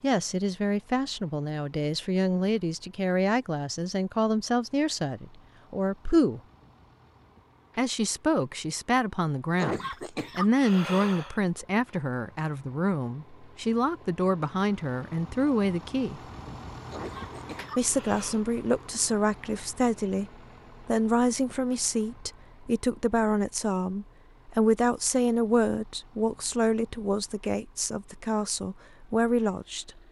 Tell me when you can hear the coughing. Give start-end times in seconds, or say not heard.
9.6-11.3, 16.9-18.4.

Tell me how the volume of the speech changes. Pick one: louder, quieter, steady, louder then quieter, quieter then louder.
steady.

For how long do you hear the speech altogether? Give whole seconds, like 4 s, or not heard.
27 s.